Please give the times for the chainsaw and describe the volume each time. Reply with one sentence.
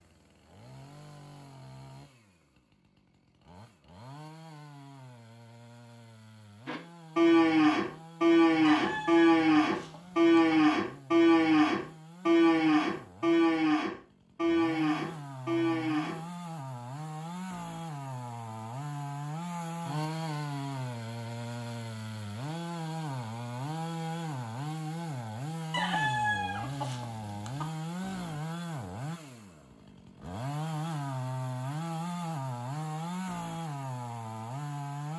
The chainsaw can be heard from 0.0 to 35.1 s, getting louder.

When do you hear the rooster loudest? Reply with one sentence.
The volume of the rooster peaks at 26 seconds.